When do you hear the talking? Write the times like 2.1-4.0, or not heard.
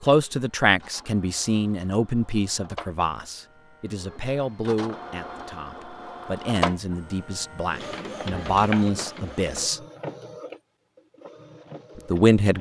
0.0-9.8, 11.9-12.5.